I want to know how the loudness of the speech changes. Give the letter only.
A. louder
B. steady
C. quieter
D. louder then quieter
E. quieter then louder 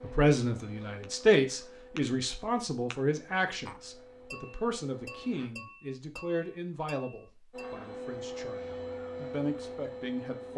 C.